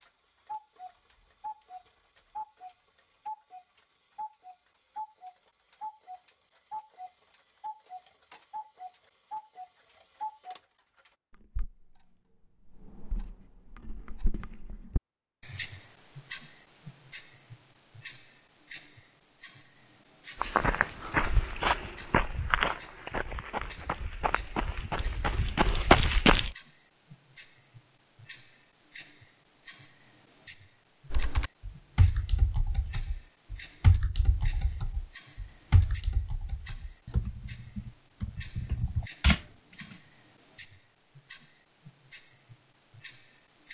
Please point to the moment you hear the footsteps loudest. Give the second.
26 s.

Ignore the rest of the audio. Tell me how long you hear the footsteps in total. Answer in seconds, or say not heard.
6 s.